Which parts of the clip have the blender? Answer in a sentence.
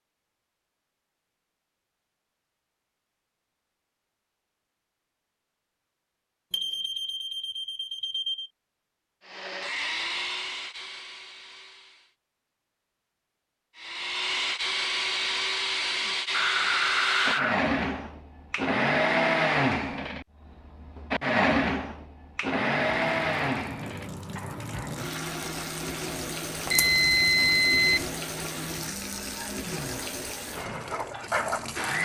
The blender can be heard from 9.2 to 12.2 s and from 13.8 to 31.9 s.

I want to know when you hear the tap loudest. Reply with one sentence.
The loudest moment of the tap is at 31 seconds.